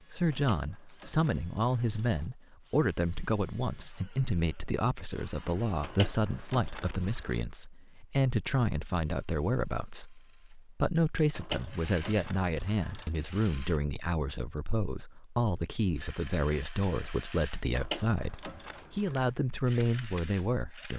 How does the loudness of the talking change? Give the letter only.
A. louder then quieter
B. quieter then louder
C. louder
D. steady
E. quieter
D.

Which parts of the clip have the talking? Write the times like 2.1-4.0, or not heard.
0.1-20.9.